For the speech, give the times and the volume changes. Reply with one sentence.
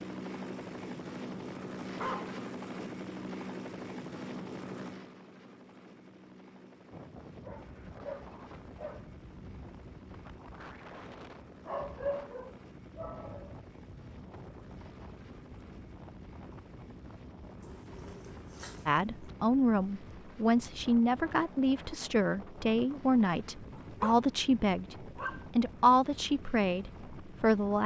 You can hear the speech from 18.9 to 27.8 s, at a steady volume.